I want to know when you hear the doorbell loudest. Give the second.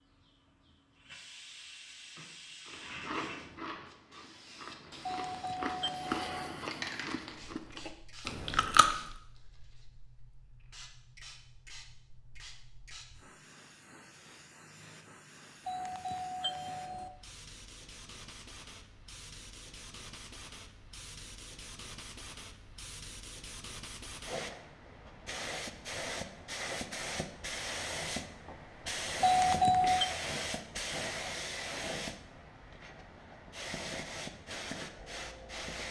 30 s.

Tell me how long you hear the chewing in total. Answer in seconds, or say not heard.
6 s.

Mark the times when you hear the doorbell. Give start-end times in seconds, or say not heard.
5.0-6.2, 15.7-17.1, 29.2-30.1.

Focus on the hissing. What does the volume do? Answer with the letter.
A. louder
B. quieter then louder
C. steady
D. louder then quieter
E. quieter
B.